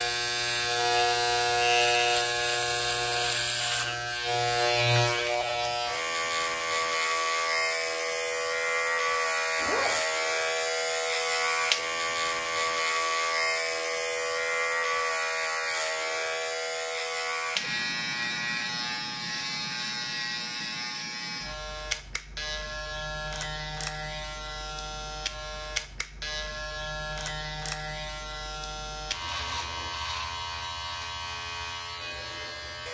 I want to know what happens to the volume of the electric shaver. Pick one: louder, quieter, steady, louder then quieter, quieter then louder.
quieter.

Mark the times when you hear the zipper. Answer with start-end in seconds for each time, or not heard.
9.6-10.0.